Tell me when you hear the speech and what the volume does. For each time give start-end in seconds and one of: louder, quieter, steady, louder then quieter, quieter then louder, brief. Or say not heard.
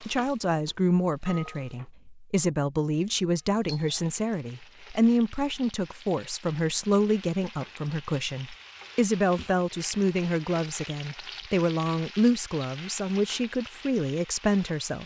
0.0-15.0 steady.